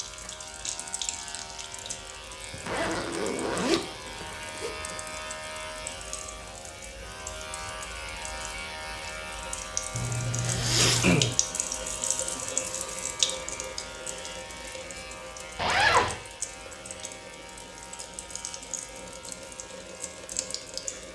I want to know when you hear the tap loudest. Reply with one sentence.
The loudest moment of the tap is at 13 seconds.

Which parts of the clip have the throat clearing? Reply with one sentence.
The throat clearing can be heard from 10.8 to 11.3 s.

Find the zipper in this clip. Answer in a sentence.
You can hear the zipper from 2.5 to 5.0 s, from 9.9 to 11.3 s and from 15.6 to 16.1 s.